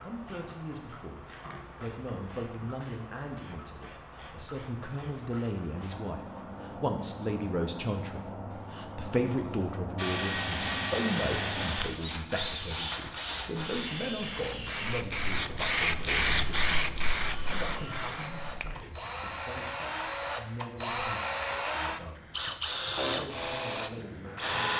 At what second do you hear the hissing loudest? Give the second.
16 s.